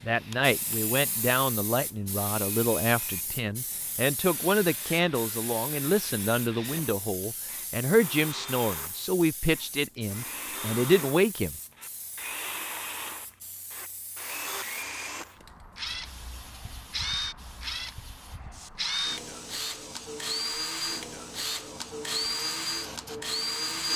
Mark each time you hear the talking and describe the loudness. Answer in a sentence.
You can hear the talking from 0.0 to 11.6 s, at a steady volume.